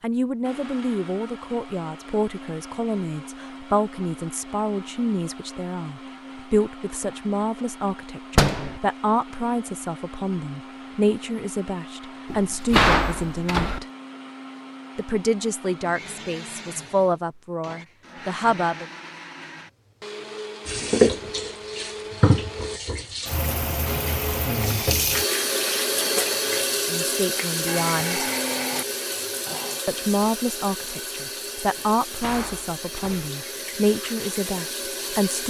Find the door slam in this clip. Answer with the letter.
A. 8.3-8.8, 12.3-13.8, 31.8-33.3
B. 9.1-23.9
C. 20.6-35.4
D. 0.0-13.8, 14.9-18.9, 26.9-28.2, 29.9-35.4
A.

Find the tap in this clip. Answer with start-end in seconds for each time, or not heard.
20.6-35.4.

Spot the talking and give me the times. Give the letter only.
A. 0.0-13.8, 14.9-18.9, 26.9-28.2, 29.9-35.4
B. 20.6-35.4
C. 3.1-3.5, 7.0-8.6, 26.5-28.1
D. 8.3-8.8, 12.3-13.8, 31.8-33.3
A.